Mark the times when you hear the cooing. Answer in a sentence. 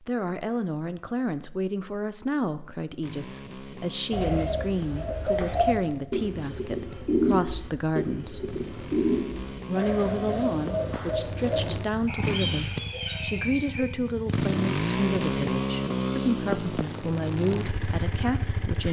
You can hear the cooing from 4.1 to 13.8 s.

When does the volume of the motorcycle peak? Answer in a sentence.
The loudest moment of the motorcycle is at 15 seconds.